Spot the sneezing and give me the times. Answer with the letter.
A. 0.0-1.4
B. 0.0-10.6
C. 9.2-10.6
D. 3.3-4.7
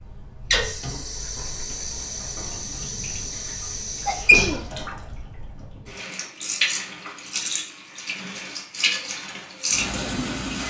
D.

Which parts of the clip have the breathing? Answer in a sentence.
The breathing can't be heard in this clip.